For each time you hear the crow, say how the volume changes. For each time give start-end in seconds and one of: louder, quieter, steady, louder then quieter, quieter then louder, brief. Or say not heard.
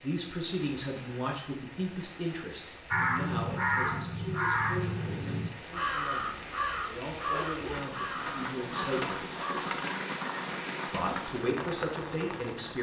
2.9-10.9 quieter.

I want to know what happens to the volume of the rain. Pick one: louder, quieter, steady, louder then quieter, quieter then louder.
louder.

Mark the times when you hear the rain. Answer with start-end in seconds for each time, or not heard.
0.0-12.7.